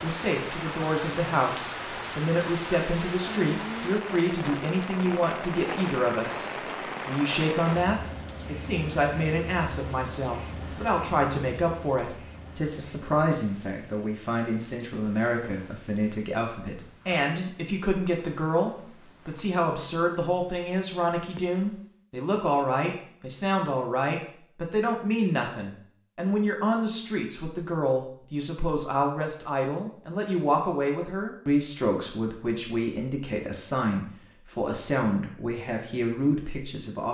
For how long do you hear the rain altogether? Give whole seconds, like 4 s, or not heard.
22 s.